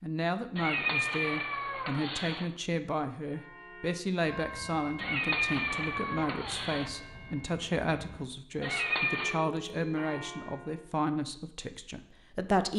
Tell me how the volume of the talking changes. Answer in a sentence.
The volume of the talking stays about the same.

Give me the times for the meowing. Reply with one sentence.
The meowing can be heard from 0.6 to 2.5 s, from 5.0 to 6.9 s and from 8.6 to 9.4 s.